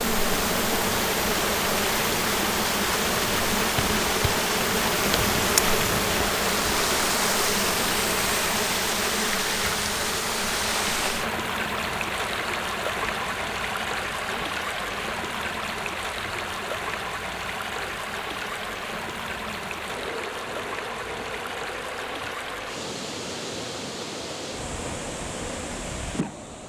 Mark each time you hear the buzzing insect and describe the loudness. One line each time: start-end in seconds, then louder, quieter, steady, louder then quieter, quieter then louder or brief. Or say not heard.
0.0-26.4 quieter.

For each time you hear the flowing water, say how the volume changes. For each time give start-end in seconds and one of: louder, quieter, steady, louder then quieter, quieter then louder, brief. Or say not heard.
0.0-26.6 quieter.